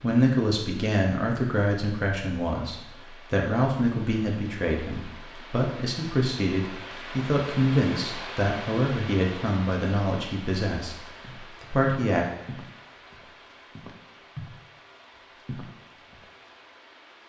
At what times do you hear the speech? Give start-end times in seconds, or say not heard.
0.0-12.2.